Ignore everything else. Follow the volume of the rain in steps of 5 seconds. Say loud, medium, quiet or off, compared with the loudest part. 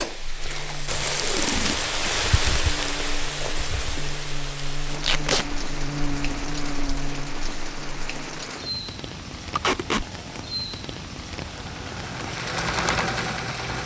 loud, medium, medium.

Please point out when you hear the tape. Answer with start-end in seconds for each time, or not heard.
0.4-1.8, 5.0-5.5, 9.6-10.1.